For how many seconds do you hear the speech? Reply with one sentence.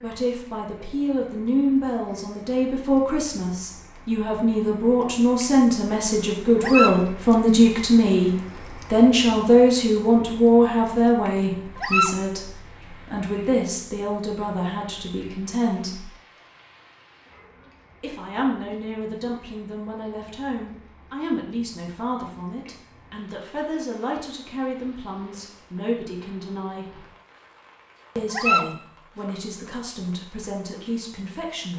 You can hear the speech for 28 seconds altogether.